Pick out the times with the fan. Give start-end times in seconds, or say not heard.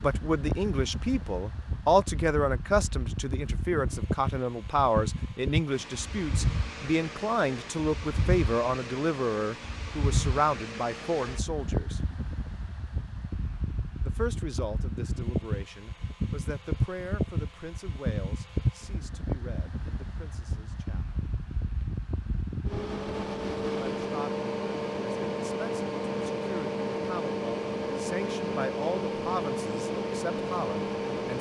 0.0-31.3.